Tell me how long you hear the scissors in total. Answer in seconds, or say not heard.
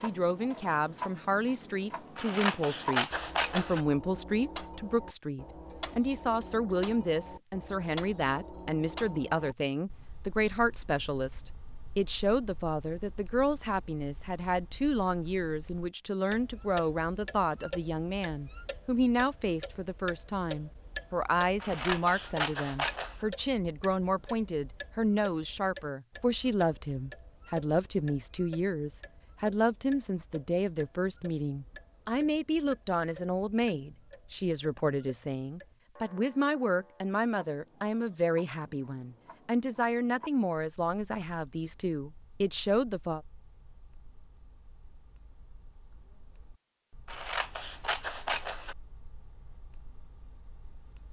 5 s.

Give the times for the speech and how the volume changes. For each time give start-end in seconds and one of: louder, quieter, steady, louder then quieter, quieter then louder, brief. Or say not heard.
0.0-43.2 steady.